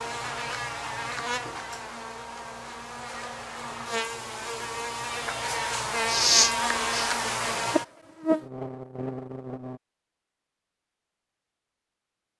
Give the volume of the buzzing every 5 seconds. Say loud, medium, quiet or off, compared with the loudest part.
medium, loud, off.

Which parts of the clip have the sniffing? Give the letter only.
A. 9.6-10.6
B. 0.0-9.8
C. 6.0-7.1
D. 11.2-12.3
C.